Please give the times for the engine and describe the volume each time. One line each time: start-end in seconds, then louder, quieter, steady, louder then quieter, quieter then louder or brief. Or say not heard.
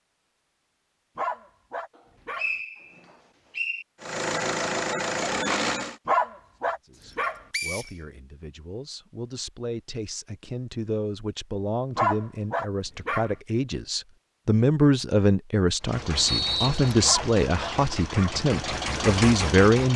4.0-6.0 brief
15.8-19.9 louder.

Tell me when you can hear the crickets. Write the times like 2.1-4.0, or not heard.
not heard.